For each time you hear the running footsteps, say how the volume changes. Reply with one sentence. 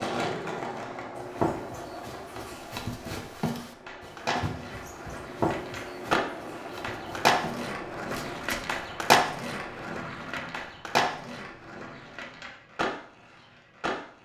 You can hear the running footsteps from 1.1 to 8.7 s, getting louder then quieter.